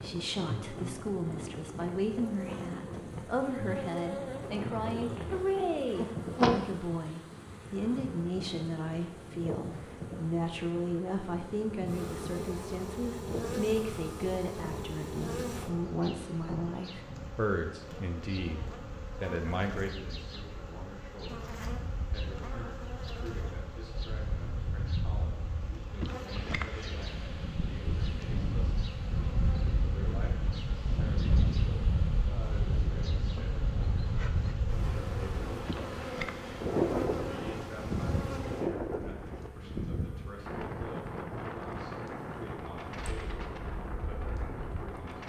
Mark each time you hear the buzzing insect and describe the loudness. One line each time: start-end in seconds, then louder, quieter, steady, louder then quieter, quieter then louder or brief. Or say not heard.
0.0-45.2 quieter.